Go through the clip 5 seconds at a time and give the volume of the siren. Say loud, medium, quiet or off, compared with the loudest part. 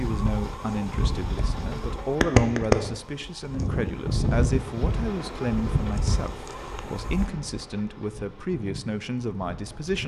loud, medium.